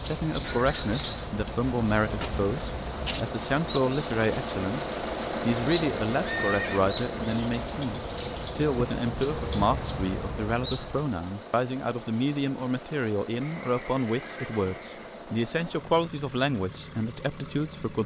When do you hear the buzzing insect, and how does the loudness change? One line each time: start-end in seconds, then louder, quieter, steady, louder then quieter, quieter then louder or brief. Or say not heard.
not heard.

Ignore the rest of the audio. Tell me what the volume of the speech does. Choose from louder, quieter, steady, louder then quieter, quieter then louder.
steady.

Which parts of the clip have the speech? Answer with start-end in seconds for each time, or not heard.
0.0-18.0.